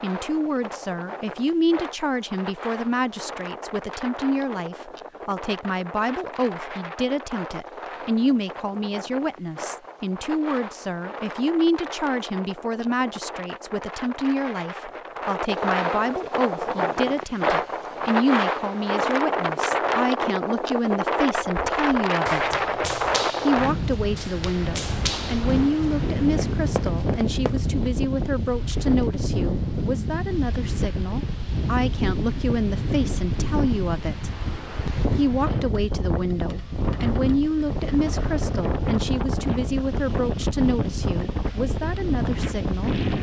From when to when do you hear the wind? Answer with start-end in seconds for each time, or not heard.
0.0-43.1.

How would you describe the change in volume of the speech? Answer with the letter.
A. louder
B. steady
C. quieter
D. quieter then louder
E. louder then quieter
B.